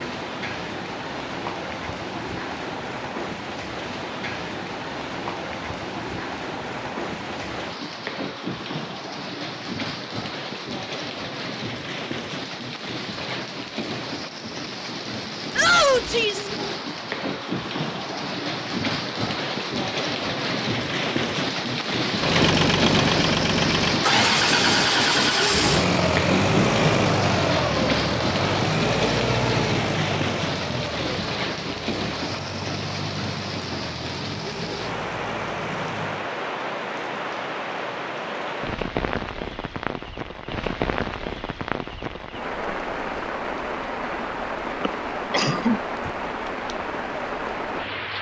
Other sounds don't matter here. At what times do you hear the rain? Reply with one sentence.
You can hear the rain from 0.0 to 48.1 s.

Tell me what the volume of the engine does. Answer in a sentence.
The volume of the engine goes down.